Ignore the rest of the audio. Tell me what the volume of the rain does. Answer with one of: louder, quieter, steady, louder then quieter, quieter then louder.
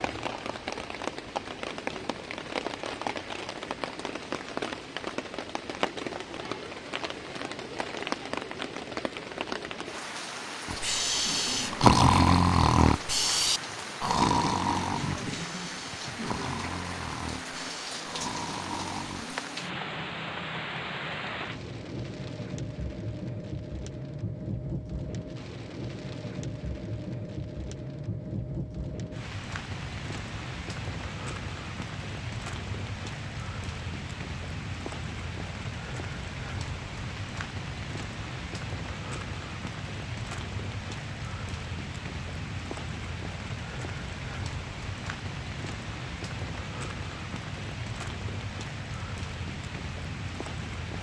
steady.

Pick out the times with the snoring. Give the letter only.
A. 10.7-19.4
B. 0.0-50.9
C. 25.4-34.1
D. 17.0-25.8
A.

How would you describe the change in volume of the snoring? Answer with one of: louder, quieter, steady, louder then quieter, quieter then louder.
quieter.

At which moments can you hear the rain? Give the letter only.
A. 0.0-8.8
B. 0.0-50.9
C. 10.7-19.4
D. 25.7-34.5
B.